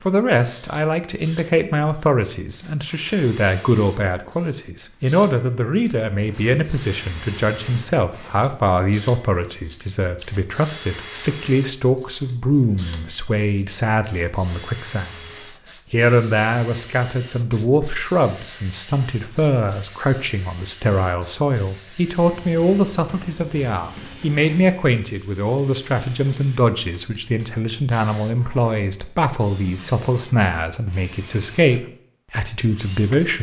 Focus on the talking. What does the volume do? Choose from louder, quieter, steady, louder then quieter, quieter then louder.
steady.